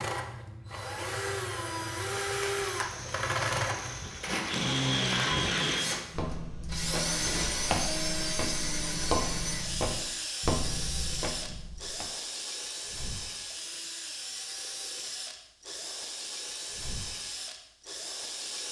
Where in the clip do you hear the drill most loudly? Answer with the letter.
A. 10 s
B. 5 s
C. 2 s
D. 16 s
B.